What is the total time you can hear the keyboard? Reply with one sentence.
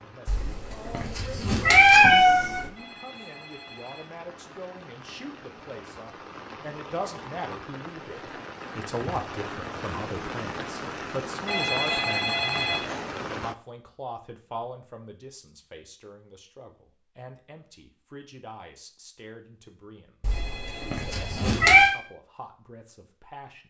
The keyboard can't be heard in this clip.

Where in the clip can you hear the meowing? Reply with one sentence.
The meowing can be heard from 0.2 to 2.6 s and from 20.2 to 21.9 s.